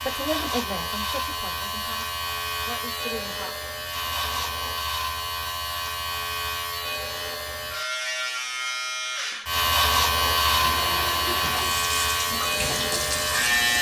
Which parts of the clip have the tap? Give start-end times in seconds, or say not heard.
10.2-13.7.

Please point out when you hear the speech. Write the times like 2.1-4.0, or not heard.
0.0-3.5.